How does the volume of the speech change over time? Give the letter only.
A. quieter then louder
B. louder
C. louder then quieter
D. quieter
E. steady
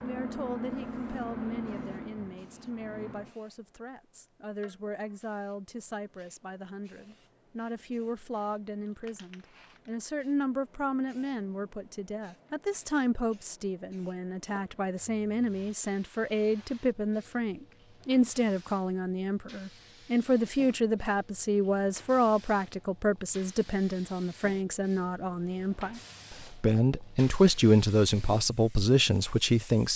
B.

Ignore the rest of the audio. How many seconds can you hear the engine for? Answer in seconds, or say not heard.
3 s.